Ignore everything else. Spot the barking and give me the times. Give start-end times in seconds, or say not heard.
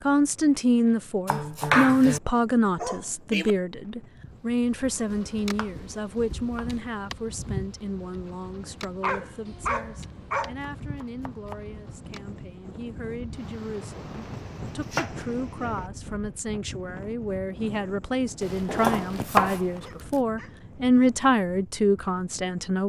2.8-3.5, 9.0-10.6, 19.8-21.1.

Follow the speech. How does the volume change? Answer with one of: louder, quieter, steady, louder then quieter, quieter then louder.
quieter then louder.